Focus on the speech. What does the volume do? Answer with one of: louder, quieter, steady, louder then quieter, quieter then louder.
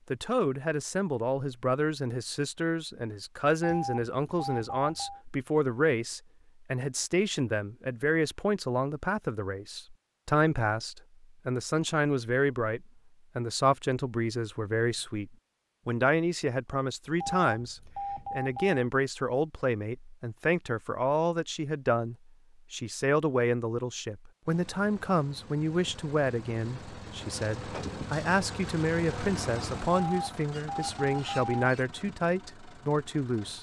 steady.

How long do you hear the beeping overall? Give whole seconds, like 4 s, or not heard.
5 s.